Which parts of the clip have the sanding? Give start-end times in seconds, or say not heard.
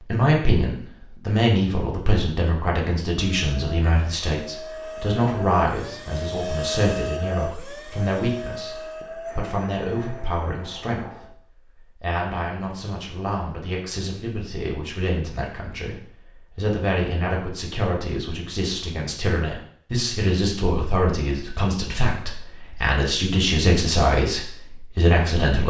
not heard.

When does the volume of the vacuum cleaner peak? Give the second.
7 s.